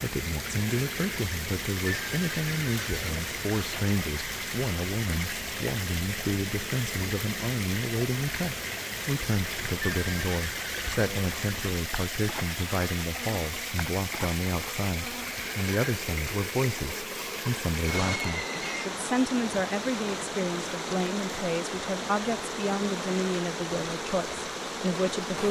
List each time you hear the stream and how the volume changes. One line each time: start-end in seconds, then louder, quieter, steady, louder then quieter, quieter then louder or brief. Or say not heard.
0.0-25.4 steady.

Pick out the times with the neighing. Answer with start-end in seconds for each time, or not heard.
1.9-3.2, 10.0-11.3, 18.0-18.9.